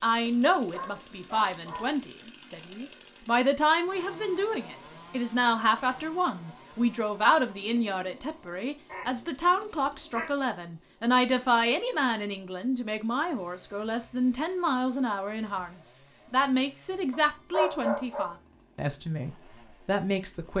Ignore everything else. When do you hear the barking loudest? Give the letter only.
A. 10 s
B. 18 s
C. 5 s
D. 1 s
B.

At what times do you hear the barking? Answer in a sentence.
The barking can be heard from 0.2 to 2.0 s, from 8.8 to 10.3 s and from 17.1 to 18.3 s.